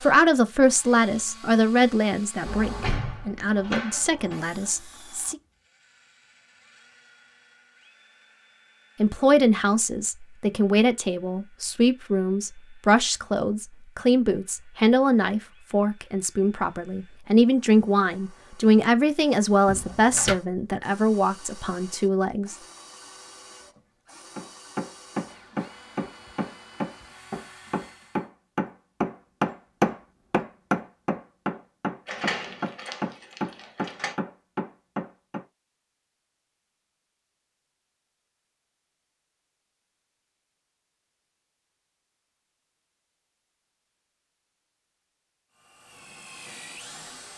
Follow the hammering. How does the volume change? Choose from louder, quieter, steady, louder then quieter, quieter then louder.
louder then quieter.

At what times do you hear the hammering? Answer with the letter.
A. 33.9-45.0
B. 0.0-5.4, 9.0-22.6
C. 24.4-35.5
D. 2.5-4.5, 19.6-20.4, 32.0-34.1
C.